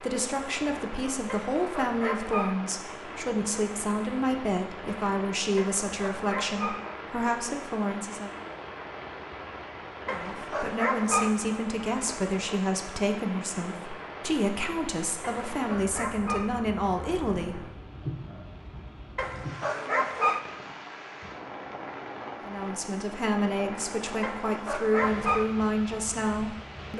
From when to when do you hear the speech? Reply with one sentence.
You can hear the speech from 0.0 to 8.3 s, from 10.1 to 17.6 s and from 22.4 to 26.9 s.